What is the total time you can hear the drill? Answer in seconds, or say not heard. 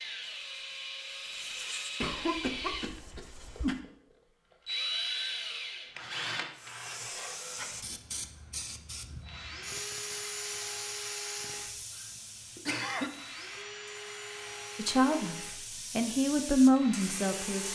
18 s.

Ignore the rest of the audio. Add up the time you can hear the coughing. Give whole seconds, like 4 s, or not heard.
2 s.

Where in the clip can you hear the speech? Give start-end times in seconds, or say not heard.
14.8-17.7.